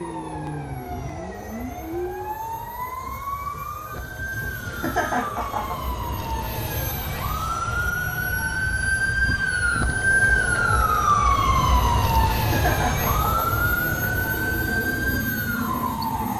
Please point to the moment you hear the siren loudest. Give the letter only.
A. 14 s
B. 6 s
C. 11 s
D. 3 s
C.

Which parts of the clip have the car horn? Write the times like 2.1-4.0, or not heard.
not heard.